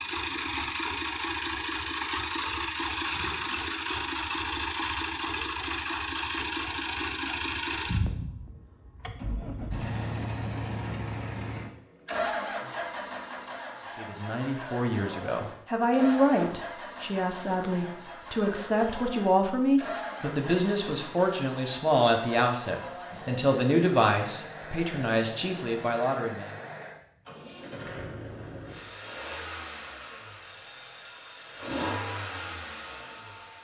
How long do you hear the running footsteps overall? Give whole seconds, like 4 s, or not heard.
not heard.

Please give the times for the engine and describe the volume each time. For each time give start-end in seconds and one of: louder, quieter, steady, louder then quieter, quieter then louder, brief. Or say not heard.
0.0-33.6 quieter.